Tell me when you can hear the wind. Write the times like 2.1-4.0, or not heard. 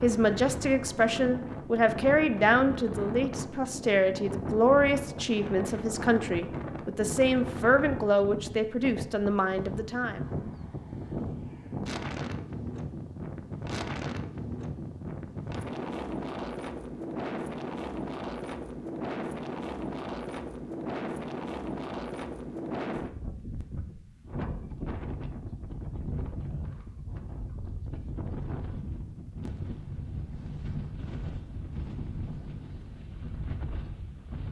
0.0-34.4.